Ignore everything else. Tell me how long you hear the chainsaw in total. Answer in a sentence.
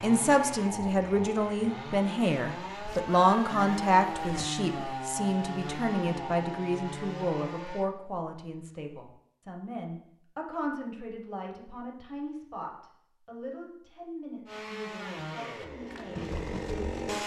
The chainsaw can be heard for 11 seconds in total.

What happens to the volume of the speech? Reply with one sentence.
The loudness of the speech goes down.